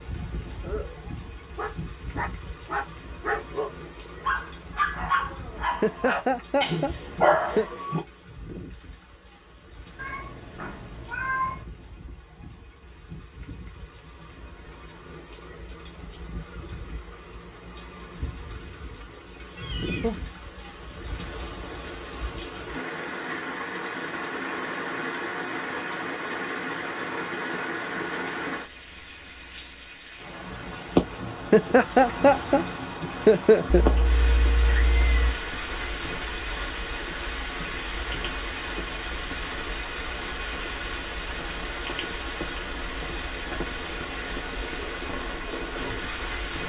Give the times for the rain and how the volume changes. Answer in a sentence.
The rain can be heard from 0.0 to 46.6 s, getting louder.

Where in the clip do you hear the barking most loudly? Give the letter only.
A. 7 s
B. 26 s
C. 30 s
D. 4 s
A.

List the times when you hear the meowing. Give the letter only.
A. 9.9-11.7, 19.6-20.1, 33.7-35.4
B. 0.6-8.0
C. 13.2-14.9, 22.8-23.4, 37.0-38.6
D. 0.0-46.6
A.